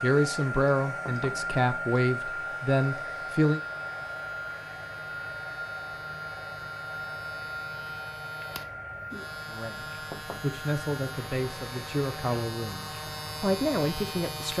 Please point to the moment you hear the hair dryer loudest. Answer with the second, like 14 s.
2 s.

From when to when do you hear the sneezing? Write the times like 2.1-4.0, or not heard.
not heard.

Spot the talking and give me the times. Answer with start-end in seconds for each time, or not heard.
0.0-3.6, 9.4-14.5.